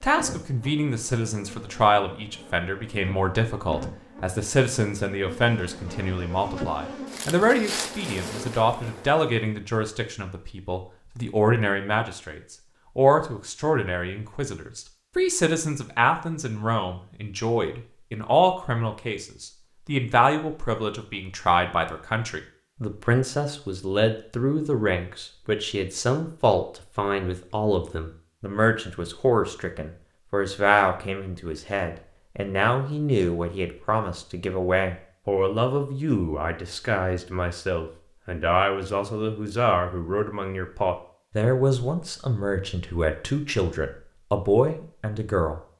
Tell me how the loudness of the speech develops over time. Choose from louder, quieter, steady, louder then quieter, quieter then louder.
steady.